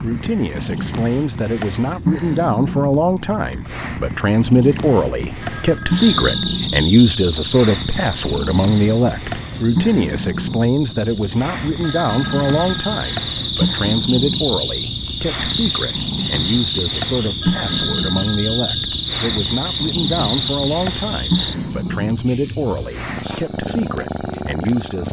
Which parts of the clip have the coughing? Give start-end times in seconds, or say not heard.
not heard.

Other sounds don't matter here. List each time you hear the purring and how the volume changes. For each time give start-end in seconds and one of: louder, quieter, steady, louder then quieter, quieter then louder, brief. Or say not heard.
0.0-25.0 steady.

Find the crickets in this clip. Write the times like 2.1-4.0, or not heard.
6.0-25.0.